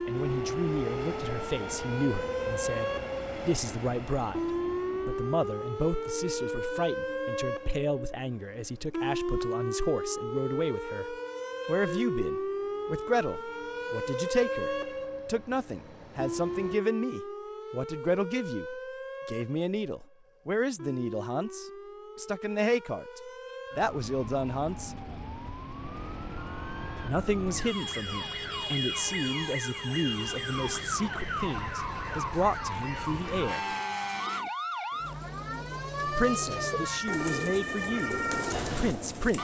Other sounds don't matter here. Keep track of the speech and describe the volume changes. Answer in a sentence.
The loudness of the speech stays about the same.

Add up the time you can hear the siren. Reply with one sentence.
The siren can be heard for 39 seconds in total.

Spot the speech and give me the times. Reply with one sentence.
You can hear the speech from 0.1 to 24.9 s, from 27.1 to 33.8 s and from 36.0 to 39.3 s.